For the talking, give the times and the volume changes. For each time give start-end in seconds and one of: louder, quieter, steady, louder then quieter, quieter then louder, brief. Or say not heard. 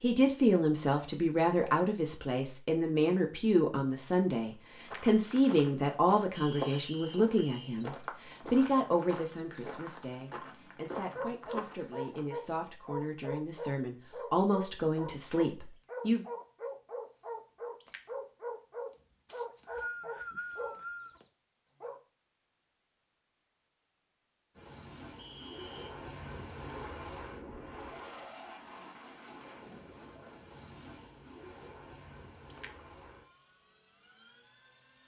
0.0-16.2 quieter then louder.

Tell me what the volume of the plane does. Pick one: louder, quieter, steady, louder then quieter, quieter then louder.
quieter.